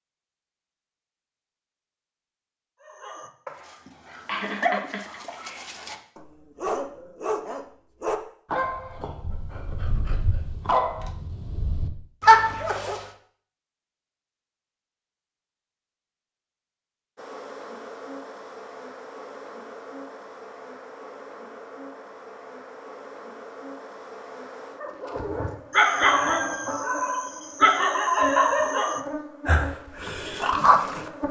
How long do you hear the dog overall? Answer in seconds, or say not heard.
17 s.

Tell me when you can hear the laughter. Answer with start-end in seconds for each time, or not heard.
3.9-5.8.